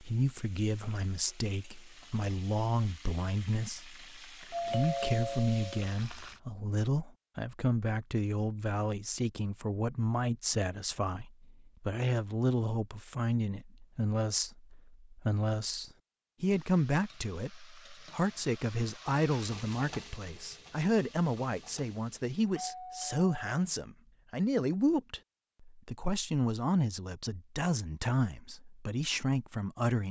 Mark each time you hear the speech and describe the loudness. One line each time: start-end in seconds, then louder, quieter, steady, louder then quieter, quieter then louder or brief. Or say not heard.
0.0-30.0 steady.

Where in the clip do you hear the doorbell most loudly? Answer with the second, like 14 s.
5 s.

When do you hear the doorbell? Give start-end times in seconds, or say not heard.
4.5-5.9, 22.5-23.6.